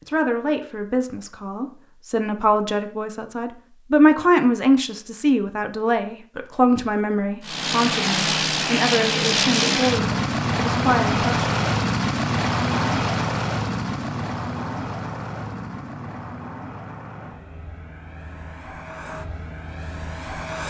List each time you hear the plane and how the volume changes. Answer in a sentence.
The plane can be heard from 7.4 to 20.6 s, getting quieter.